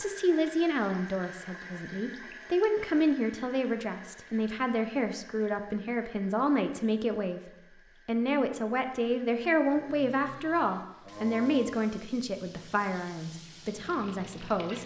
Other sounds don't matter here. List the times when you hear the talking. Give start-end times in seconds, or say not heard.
0.0-7.4, 8.1-14.8.